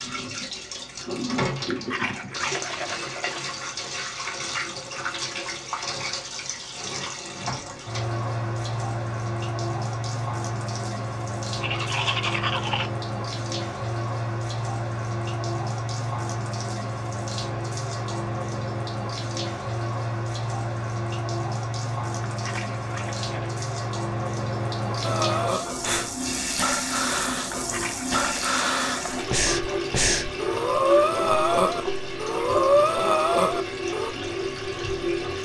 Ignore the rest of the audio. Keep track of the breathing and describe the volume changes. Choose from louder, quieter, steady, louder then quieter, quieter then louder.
louder.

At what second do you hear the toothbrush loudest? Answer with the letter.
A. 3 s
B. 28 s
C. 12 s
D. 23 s
C.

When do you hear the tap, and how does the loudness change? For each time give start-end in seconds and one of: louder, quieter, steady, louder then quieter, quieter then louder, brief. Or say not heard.
0.0-35.4 steady.